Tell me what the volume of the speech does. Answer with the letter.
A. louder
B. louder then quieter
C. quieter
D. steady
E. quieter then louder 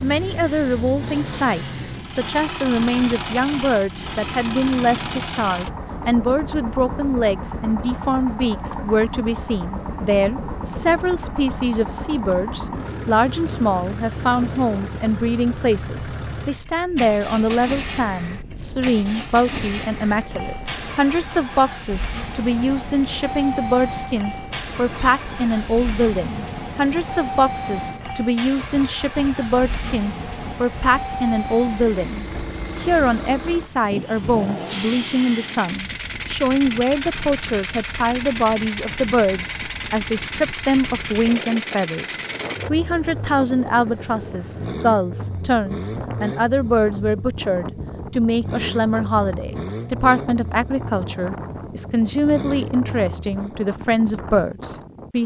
D.